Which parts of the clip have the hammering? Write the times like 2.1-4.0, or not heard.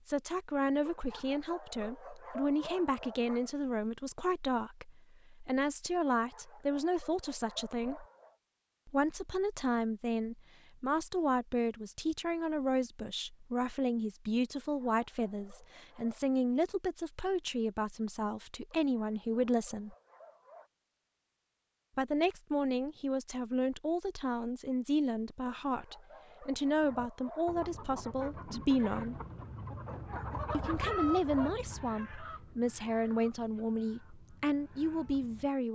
not heard.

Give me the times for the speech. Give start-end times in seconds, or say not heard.
0.1-8.1, 8.8-19.9, 21.9-29.2, 30.5-35.7.